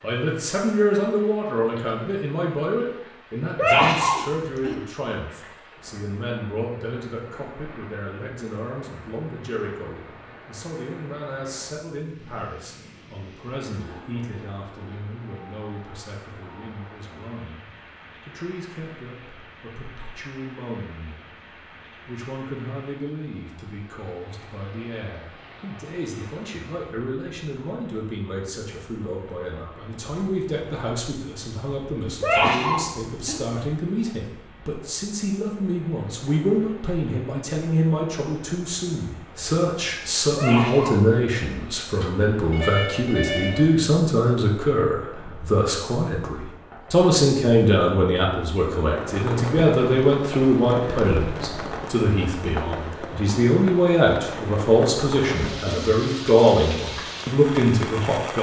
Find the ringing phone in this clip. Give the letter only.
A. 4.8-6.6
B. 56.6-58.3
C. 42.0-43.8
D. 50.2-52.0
C.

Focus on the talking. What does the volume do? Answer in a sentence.
The volume of the talking goes down, then up.